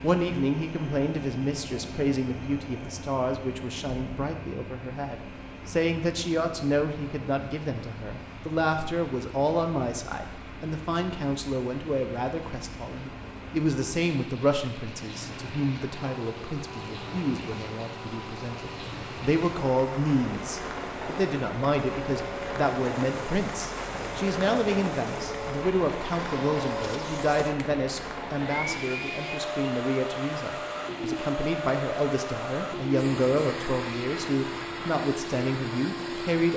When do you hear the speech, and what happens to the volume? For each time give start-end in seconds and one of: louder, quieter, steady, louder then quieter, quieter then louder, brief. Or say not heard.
0.0-36.5 steady.